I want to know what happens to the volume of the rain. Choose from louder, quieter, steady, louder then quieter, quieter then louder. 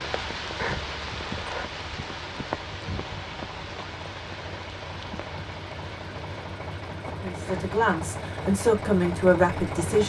quieter.